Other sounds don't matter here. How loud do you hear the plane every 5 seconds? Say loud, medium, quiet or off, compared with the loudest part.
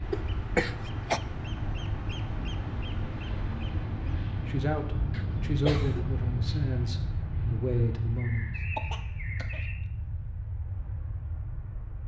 loud, loud, medium.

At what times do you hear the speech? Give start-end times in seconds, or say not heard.
4.5-8.5.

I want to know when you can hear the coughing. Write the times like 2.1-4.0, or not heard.
0.1-1.2, 5.1-6.0, 8.8-9.7.